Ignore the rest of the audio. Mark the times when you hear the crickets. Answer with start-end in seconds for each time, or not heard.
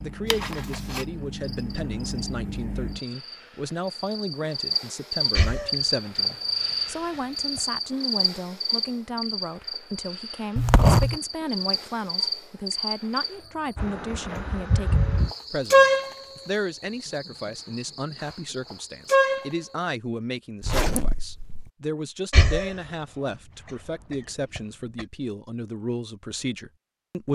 0.0-19.9.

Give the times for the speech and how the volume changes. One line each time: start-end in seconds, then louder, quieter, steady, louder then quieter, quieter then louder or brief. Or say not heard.
0.0-27.3 steady.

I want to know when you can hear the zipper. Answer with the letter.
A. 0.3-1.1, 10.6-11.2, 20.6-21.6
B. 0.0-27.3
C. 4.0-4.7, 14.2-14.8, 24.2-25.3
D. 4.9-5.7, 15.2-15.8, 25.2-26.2
A.